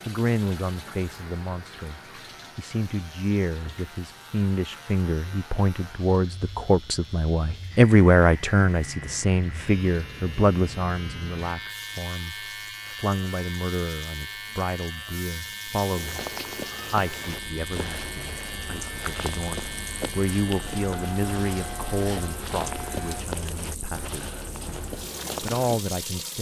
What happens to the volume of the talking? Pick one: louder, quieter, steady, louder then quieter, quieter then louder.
louder then quieter.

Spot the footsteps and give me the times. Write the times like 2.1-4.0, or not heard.
15.9-25.8.